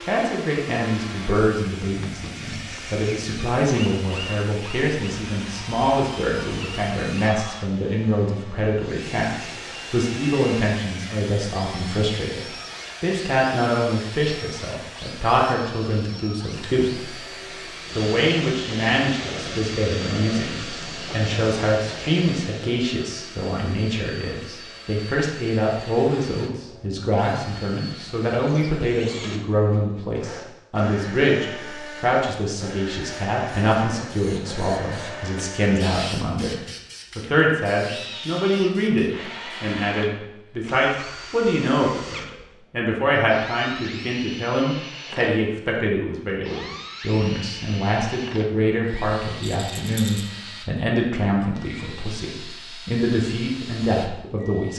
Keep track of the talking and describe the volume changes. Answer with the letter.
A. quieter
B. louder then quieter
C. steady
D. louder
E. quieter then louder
C.